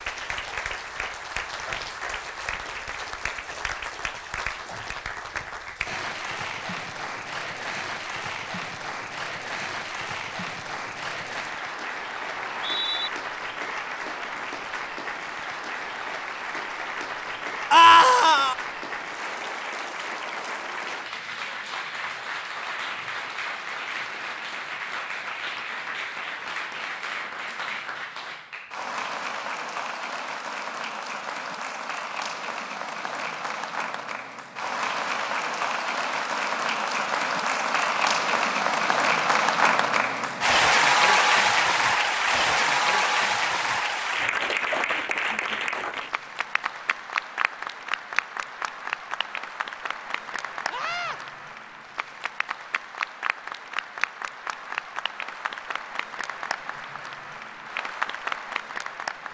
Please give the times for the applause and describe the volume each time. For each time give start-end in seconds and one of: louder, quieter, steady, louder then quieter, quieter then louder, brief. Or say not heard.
0.0-59.2 louder then quieter.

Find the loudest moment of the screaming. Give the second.
18 s.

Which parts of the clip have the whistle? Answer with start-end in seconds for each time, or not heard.
12.3-13.1.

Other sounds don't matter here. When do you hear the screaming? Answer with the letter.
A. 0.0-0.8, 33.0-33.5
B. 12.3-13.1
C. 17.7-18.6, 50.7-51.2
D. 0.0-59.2
C.